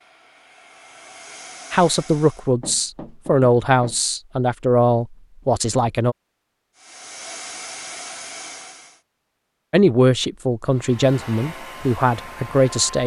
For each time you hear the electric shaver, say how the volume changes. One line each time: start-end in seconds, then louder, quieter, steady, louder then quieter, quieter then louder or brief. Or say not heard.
not heard.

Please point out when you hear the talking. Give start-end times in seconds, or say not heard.
1.7-6.2, 9.7-13.0.